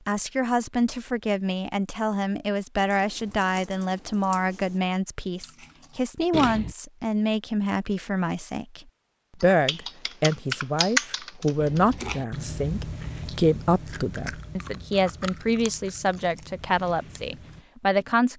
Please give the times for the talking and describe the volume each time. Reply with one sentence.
The talking can be heard from 0.1 to 8.8 s, at a steady volume; and from 9.4 to 18.3 s, at a steady volume.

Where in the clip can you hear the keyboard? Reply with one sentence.
The keyboard can be heard from 2.8 to 4.8 s and from 9.4 to 12.1 s.